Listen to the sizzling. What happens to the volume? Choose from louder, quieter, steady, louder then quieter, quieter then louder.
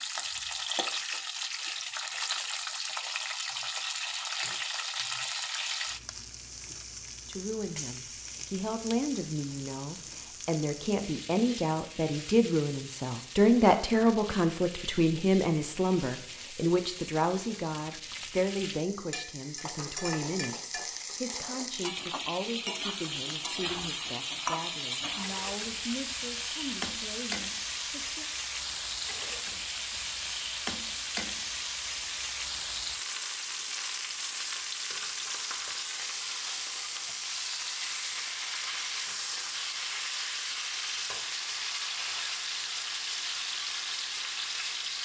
quieter then louder.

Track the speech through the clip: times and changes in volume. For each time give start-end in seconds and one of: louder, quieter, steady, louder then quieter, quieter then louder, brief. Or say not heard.
7.2-28.2 louder then quieter.